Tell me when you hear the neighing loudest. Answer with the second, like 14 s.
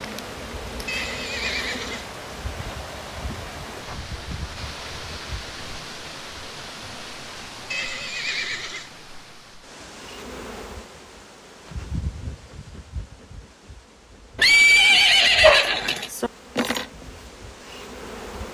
15 s.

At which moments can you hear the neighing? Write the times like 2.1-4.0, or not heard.
0.8-2.0, 7.7-8.8, 14.3-16.1.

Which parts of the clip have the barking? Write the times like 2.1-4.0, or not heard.
15.4-16.3.